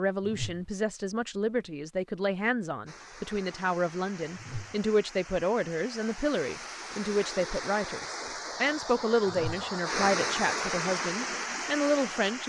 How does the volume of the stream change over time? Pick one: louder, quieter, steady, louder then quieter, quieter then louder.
louder.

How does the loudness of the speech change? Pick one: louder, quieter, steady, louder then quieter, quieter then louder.
steady.